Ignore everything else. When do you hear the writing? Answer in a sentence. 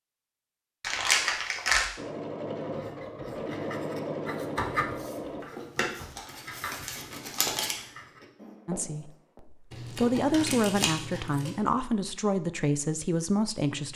You can hear the writing from 2.6 to 9.4 s.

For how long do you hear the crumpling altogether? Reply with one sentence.
You can hear the crumpling for 5 seconds altogether.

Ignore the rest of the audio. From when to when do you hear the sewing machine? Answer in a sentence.
You can hear the sewing machine from 1.9 to 5.5 s.